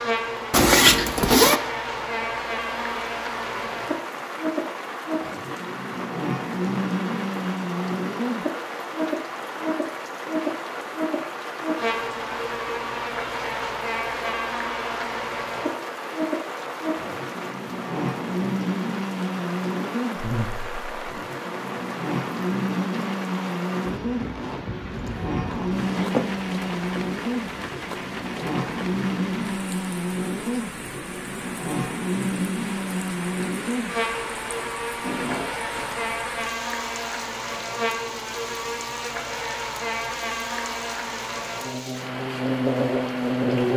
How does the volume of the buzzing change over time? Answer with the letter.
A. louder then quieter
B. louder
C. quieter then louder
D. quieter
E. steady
E.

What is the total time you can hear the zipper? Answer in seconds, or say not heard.
4 s.